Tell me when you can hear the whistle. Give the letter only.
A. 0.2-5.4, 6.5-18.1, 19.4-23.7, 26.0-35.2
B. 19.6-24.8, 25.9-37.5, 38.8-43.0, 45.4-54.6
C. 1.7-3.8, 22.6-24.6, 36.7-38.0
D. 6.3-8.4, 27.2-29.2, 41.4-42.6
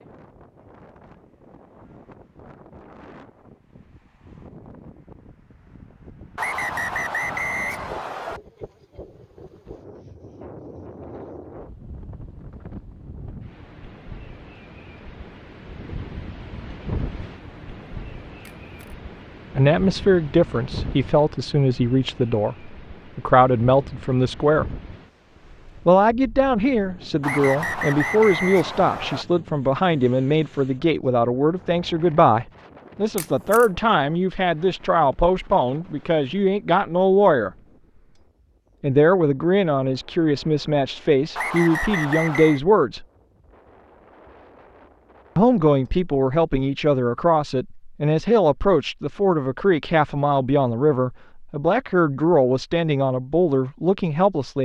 D.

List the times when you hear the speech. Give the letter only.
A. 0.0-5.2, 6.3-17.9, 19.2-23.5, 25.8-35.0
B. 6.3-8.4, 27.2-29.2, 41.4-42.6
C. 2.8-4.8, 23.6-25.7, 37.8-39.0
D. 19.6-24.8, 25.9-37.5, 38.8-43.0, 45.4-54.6
D.